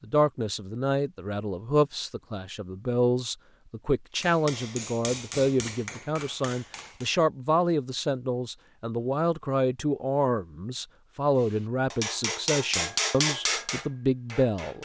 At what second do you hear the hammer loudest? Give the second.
13 s.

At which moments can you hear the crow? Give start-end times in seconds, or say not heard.
not heard.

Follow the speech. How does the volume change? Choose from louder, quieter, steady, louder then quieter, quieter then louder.
steady.